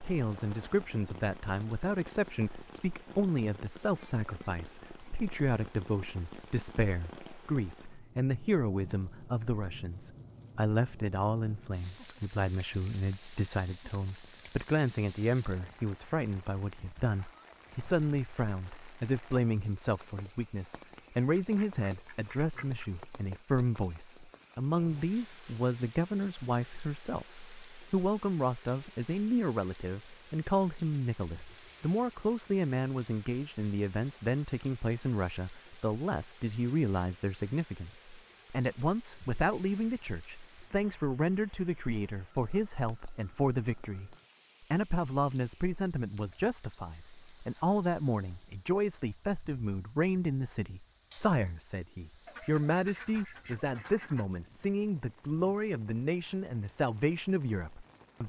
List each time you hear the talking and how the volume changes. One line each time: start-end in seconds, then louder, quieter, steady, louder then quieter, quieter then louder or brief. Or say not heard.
0.0-58.2 steady.